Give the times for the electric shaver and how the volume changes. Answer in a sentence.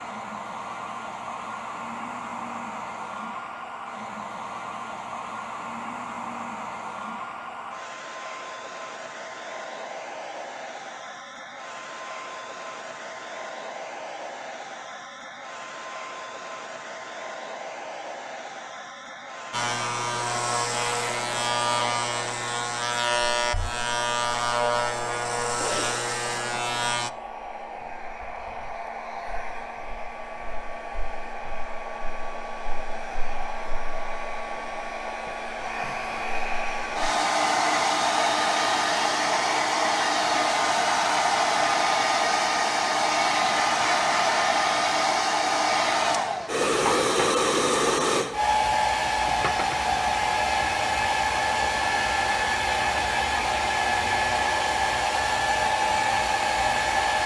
The electric shaver can be heard from 19.5 to 27.1 s, at a steady volume.